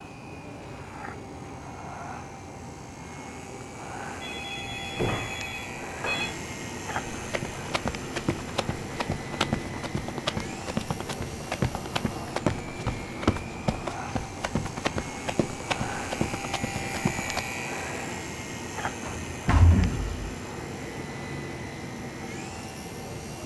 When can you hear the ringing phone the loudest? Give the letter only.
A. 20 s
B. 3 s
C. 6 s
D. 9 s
C.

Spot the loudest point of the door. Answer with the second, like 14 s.
20 s.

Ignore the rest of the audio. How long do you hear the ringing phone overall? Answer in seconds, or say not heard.
2 s.